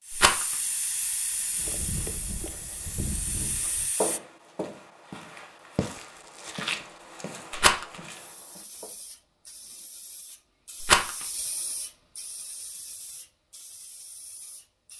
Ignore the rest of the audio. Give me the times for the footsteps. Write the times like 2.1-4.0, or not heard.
1.6-8.9.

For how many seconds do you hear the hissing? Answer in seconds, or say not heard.
11 s.